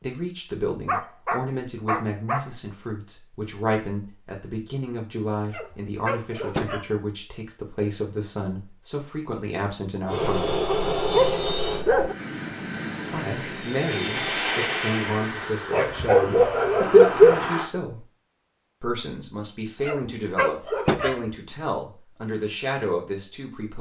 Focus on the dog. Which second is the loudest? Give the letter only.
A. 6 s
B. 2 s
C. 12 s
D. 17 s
D.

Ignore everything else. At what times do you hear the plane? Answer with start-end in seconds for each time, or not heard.
10.1-17.7.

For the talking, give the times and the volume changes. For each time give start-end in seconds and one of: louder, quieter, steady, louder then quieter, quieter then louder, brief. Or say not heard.
0.0-10.6 steady
13.1-18.1 steady
18.8-23.7 steady.